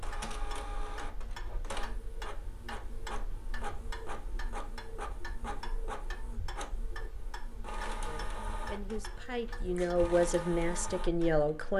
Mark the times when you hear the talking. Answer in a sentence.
The talking can be heard from 8.1 to 11.7 s.